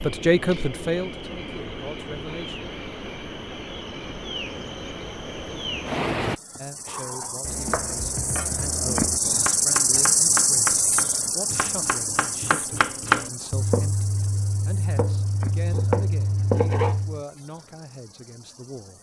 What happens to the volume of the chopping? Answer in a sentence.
The loudness of the chopping goes up.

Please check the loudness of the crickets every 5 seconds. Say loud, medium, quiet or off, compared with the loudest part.
medium, loud, loud, quiet.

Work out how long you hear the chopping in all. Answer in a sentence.
The chopping can be heard for 10 seconds in total.